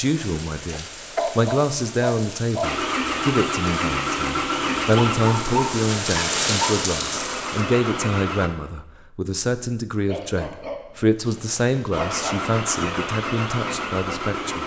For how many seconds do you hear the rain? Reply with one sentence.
You can hear the rain for 8 seconds altogether.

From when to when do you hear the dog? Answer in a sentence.
You can hear the dog from 0.7 to 2.7 s, from 5.0 to 6.8 s and from 10.1 to 12.4 s.